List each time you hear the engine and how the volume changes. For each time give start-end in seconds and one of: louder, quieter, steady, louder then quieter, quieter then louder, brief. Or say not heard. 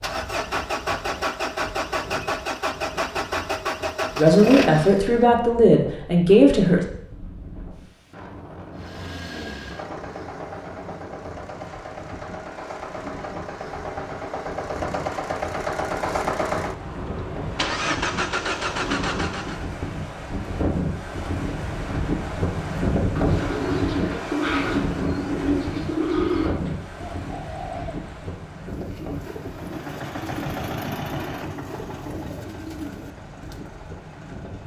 0.0-5.2 steady
8.8-19.6 louder
29.4-34.6 quieter.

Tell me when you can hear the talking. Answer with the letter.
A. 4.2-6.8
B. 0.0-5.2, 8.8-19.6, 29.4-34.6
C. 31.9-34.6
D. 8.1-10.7
A.